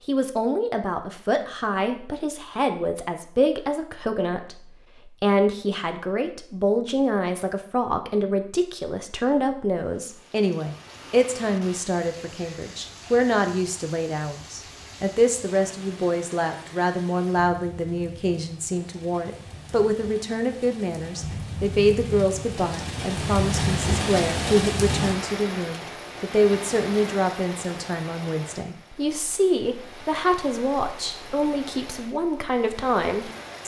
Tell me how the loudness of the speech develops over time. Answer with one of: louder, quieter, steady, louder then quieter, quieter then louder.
steady.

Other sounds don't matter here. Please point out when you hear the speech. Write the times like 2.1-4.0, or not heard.
0.1-33.6.